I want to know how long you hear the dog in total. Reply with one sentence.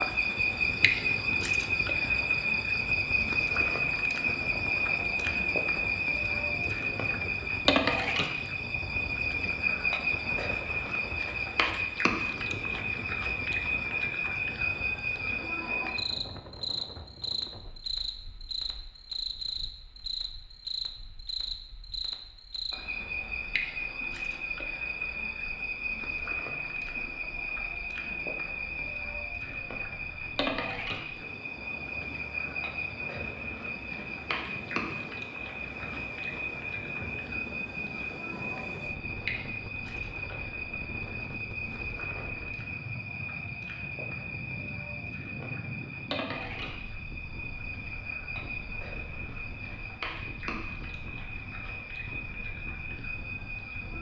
You can't hear the dog here.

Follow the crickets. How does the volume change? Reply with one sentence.
The volume of the crickets goes down.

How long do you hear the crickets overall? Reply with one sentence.
You can hear the crickets for 54 seconds altogether.